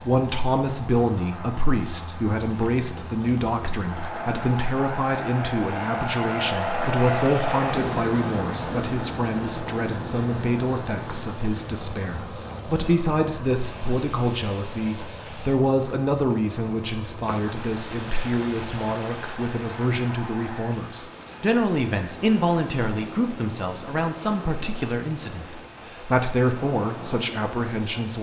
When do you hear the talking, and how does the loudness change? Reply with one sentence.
You can hear the talking from 0.0 to 28.1 s, at a steady volume.